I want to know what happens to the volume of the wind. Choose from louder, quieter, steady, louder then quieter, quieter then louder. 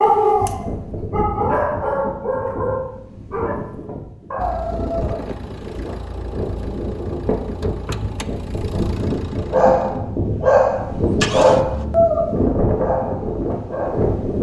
louder.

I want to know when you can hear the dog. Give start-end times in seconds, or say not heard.
0.0-5.2, 9.5-14.2.